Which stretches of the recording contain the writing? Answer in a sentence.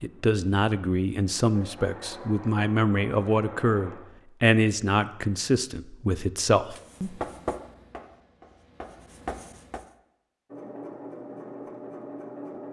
You can hear the writing from 6.8 to 9.8 s.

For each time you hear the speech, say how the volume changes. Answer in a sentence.
The speech can be heard from 0.0 to 7.2 s, at a steady volume.